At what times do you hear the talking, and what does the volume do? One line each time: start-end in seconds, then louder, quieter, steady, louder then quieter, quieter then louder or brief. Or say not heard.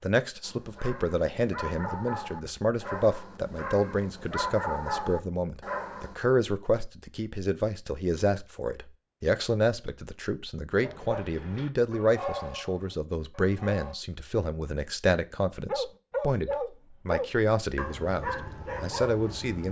0.0-19.6 steady.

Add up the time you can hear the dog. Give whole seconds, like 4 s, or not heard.
13 s.